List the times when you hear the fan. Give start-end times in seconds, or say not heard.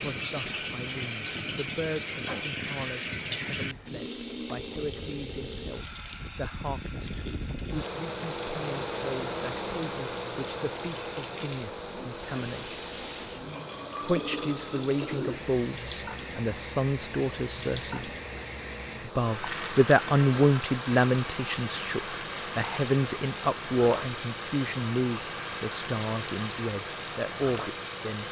0.0-28.2.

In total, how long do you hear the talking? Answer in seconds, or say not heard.
26 s.